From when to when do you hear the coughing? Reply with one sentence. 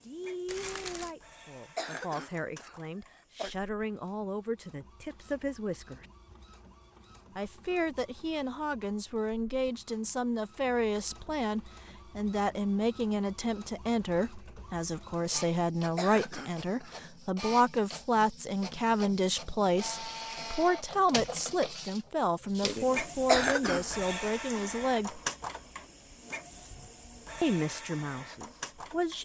You can hear the coughing from 1.8 to 3.5 s, from 15.9 to 16.9 s and from 23.2 to 23.9 s.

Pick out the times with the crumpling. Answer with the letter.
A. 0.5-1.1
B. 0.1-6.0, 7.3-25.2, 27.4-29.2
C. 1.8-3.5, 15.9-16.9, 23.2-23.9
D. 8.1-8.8
A.